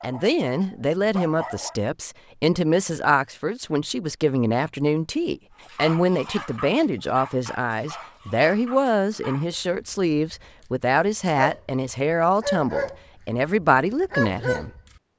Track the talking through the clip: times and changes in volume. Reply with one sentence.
You can hear the talking from 0.0 to 14.7 s, at a steady volume.